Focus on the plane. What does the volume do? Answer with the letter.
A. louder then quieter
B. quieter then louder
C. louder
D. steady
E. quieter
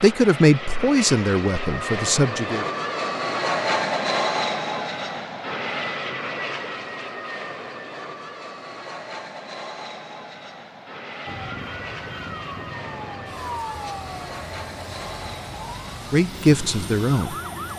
E.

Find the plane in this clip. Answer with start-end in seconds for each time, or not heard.
0.0-17.7.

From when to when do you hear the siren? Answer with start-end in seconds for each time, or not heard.
11.2-17.7.